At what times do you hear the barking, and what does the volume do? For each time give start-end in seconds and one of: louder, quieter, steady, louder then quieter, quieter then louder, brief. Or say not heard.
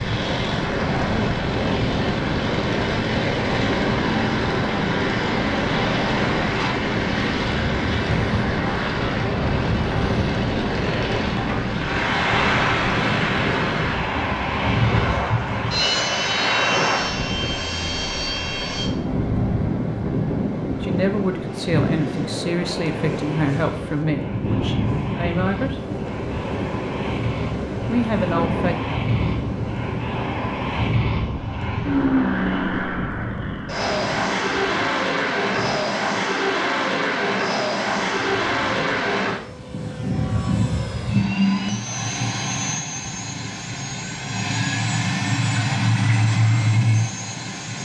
not heard.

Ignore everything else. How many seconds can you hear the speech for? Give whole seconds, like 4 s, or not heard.
6 s.